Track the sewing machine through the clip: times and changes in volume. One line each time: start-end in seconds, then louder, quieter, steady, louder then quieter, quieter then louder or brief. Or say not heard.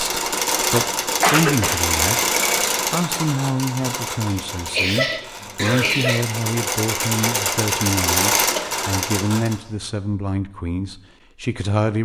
0.0-9.6 quieter then louder.